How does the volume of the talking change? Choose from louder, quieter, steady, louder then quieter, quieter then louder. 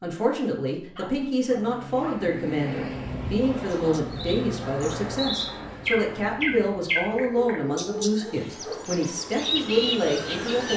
steady.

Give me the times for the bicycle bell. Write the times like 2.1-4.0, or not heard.
not heard.